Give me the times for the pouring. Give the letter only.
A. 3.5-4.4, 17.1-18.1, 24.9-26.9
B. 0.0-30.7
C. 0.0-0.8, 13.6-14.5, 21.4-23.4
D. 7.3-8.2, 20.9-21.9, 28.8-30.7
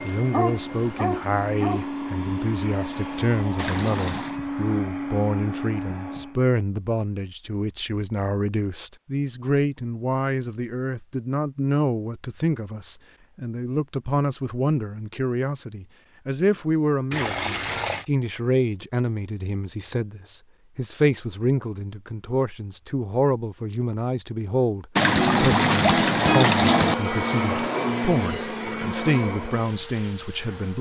A.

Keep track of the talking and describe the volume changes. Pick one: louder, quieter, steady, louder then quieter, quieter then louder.
steady.